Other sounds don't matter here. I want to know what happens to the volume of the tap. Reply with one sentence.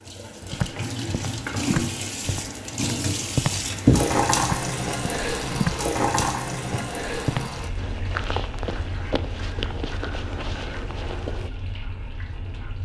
The volume of the tap goes up, then down.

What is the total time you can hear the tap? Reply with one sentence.
You can hear the tap for 13 seconds altogether.